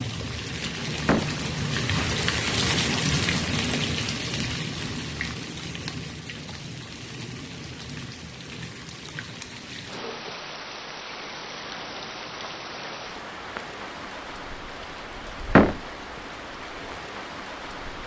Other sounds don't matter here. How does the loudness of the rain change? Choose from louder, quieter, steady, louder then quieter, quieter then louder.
quieter.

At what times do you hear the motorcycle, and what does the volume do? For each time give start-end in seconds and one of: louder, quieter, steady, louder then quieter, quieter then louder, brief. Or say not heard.
not heard.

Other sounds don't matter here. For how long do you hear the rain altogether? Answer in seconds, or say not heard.
18 s.